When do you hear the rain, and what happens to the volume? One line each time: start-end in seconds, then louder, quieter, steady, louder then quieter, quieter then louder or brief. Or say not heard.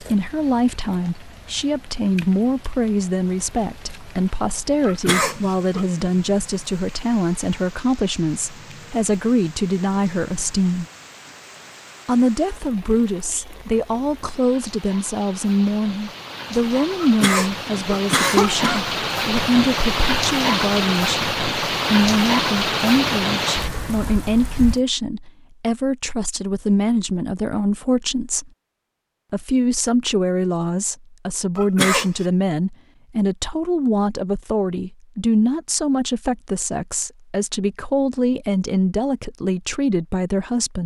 0.0-24.8 louder.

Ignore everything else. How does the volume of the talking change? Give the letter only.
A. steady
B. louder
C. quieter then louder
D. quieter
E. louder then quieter
A.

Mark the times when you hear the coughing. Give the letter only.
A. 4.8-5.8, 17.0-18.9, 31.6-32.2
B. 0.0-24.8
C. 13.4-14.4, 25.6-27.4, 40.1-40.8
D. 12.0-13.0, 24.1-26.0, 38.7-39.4
A.